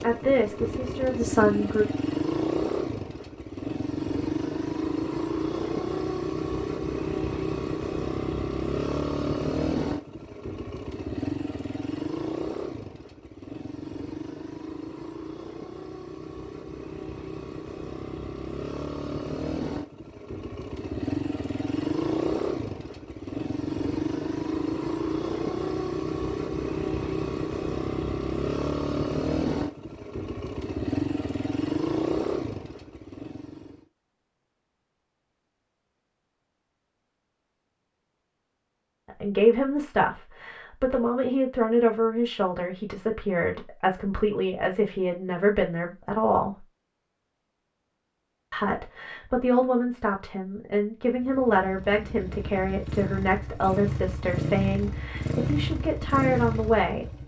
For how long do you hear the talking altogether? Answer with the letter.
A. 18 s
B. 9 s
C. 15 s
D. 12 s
A.